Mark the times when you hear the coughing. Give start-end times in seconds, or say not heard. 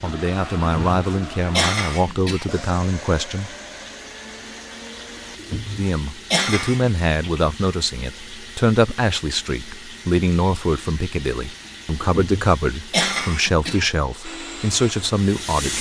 0.8-2.5, 5.3-6.9, 12.1-13.9.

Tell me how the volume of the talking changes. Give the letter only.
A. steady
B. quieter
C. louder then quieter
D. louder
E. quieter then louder
A.